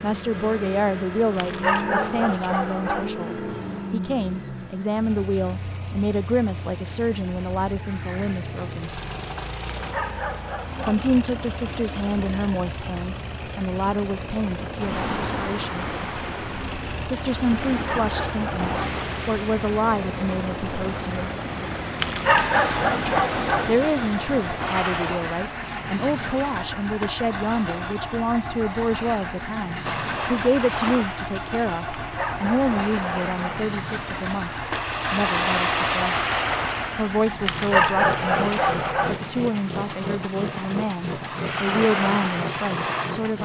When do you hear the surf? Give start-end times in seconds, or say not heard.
14.8-43.4.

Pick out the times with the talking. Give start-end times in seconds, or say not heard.
0.0-8.9, 10.8-15.8, 17.1-21.3, 23.6-34.5, 35.1-36.1, 37.0-43.4.